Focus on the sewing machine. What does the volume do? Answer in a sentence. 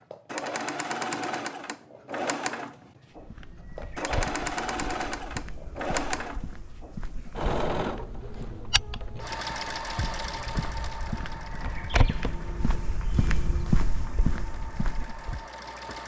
The loudness of the sewing machine goes down.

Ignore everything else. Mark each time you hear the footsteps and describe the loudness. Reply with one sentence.
The footsteps can be heard from 3.1 to 15.4 s, getting louder.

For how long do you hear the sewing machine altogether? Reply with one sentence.
The sewing machine can be heard for 16 seconds in total.